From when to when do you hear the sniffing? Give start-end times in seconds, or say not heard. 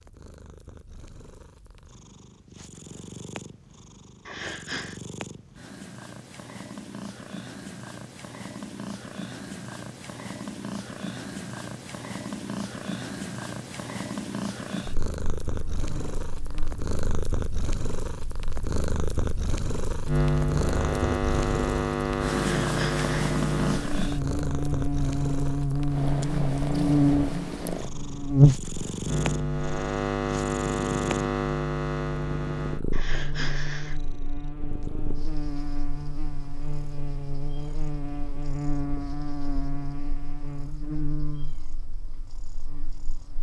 4.2-5.0, 22.4-23.2, 32.9-34.0.